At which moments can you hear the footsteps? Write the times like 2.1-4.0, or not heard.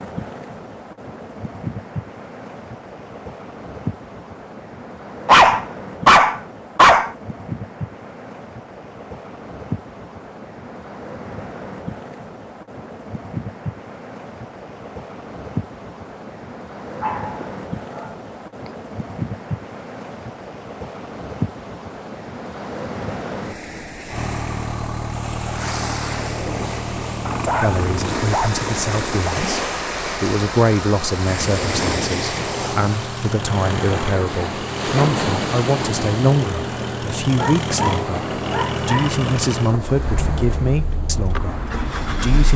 not heard.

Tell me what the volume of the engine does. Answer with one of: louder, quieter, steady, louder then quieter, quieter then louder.
steady.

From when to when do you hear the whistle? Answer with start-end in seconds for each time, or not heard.
not heard.